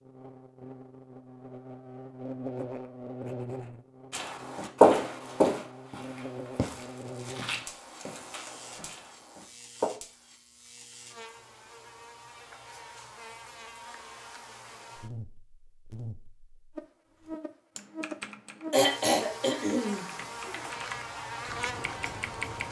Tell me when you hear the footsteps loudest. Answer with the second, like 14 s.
5 s.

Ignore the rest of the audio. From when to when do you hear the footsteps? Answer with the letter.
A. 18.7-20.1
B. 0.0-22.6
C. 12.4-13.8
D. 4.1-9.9
D.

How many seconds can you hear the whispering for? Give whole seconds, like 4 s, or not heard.
not heard.